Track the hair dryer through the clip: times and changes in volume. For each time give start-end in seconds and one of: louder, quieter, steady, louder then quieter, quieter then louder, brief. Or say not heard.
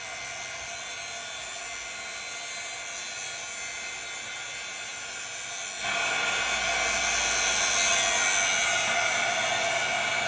0.0-10.2 louder.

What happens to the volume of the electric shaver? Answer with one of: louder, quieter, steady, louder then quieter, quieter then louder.
louder.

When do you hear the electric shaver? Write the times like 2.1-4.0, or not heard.
0.0-10.2.